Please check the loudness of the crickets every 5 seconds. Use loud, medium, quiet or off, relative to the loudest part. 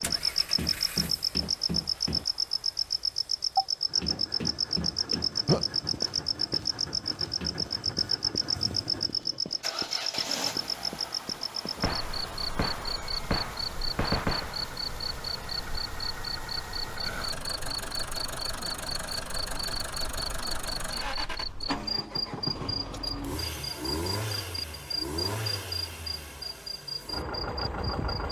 loud, loud, medium, medium, medium, medium.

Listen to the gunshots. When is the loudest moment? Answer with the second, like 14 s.
14 s.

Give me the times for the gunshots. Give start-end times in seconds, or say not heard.
11.8-14.7.